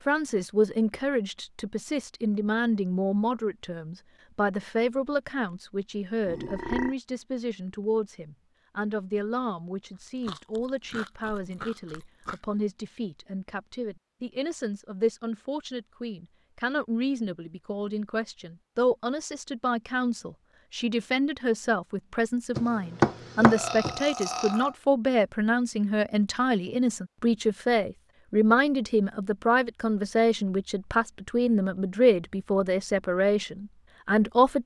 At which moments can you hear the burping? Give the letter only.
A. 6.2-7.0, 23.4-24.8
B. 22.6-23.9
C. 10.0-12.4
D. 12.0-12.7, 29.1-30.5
A.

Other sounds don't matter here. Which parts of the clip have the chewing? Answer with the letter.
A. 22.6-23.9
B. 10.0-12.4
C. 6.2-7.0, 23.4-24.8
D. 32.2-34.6
B.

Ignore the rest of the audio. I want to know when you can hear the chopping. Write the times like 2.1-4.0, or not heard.
22.6-23.9.